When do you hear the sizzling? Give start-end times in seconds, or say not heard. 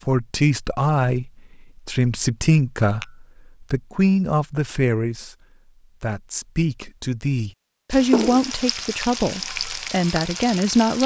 7.9-11.0.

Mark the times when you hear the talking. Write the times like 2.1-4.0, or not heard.
0.1-5.3, 6.0-11.0.